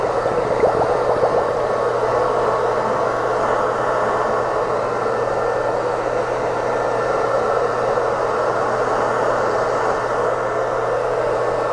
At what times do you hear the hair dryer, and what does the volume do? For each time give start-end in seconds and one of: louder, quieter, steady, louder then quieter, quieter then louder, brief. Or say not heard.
0.0-11.6 steady.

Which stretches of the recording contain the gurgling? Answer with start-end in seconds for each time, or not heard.
0.0-1.7.